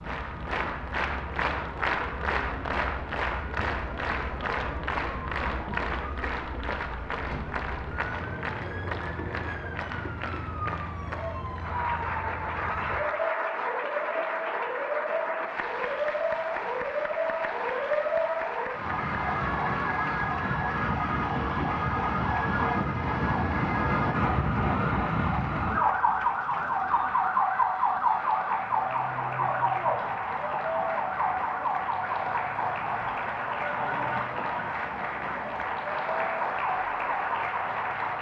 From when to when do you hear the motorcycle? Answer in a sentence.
The motorcycle can't be heard in this clip.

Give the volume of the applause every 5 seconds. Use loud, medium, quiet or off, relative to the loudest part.
loud, loud, loud, medium, medium, medium, loud, loud.